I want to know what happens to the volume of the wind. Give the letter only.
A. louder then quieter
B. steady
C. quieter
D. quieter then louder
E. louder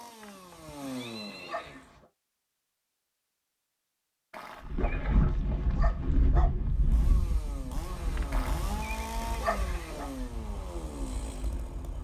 C.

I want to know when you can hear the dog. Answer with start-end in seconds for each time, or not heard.
0.2-2.0, 4.5-6.5, 8.2-10.1.